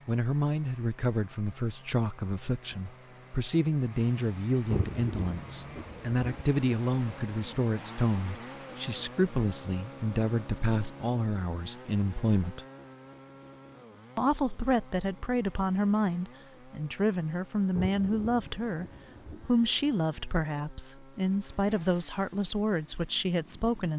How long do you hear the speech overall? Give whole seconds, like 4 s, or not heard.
22 s.